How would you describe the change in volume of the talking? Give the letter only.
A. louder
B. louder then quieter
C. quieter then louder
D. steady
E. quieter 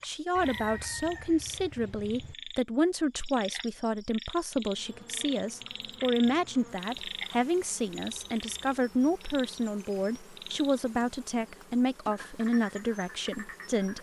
D.